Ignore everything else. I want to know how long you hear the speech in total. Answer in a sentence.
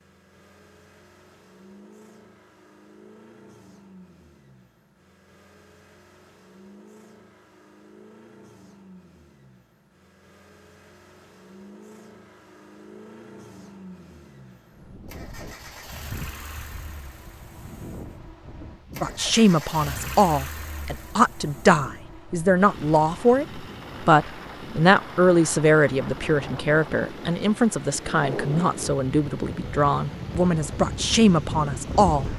The speech can be heard for 13 seconds in total.